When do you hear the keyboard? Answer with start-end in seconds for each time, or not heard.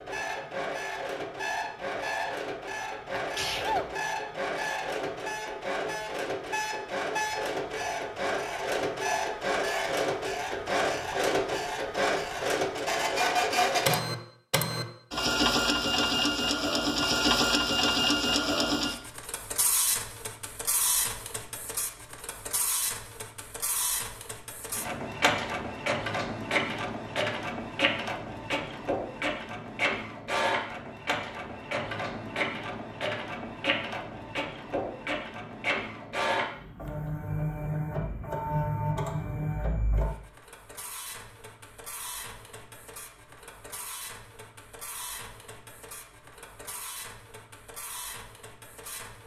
not heard.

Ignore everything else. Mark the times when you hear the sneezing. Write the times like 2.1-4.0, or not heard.
3.1-4.0.